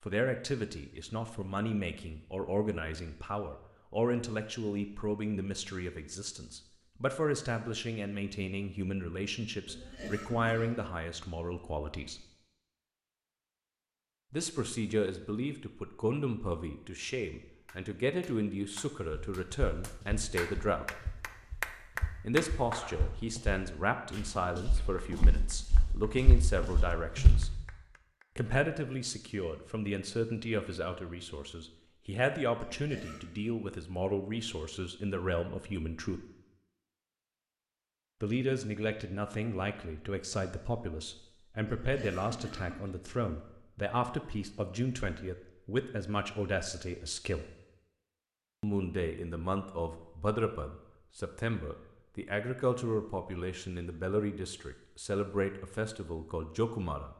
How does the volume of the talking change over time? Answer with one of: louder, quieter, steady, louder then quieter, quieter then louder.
steady.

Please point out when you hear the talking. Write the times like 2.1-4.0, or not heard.
0.0-12.2, 14.3-21.0, 22.2-27.5, 28.4-36.2, 38.2-47.5, 48.6-57.1.